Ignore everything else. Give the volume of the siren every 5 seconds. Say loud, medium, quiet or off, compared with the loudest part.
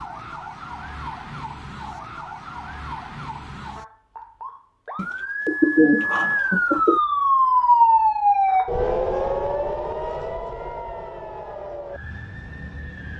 quiet, loud, quiet.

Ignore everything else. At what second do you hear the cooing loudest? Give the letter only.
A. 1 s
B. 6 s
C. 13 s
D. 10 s
B.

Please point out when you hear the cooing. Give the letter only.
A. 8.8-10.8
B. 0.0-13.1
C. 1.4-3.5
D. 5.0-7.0
D.